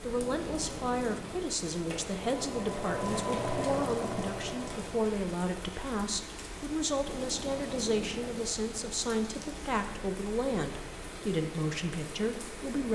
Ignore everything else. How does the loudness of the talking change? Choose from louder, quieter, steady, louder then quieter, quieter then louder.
steady.